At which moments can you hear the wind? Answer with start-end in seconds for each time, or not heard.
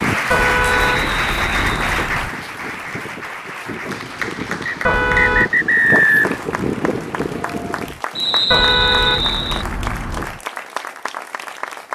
0.0-8.0.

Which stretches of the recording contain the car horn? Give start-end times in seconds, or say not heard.
0.3-2.3, 4.8-5.5, 8.5-10.4.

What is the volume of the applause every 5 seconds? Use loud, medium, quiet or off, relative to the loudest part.
loud, medium, medium.